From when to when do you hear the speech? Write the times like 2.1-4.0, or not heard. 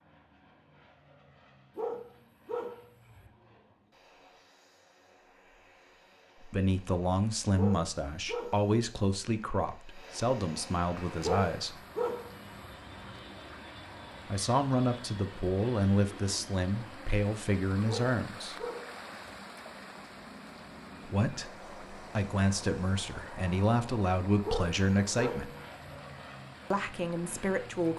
6.4-11.8, 14.2-18.6, 21.1-25.6, 26.7-27.9.